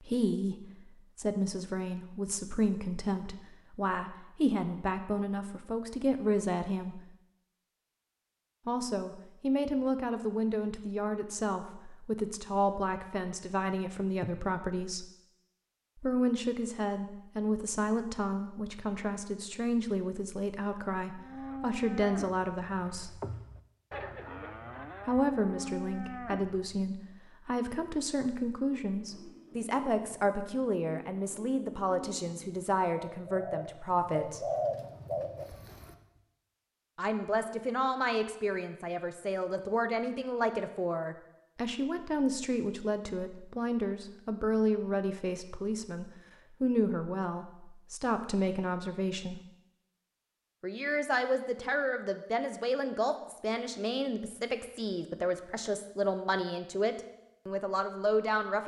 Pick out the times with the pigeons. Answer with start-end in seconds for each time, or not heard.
28.8-36.0.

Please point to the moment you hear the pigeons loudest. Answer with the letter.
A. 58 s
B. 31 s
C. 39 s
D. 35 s
D.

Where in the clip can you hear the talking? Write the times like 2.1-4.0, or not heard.
0.0-7.1, 8.7-15.1, 16.0-23.2, 25.1-34.4, 37.0-49.4, 50.6-58.6.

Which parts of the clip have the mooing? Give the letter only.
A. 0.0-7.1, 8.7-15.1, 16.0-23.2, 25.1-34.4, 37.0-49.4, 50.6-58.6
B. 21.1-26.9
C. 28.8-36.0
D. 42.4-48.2
B.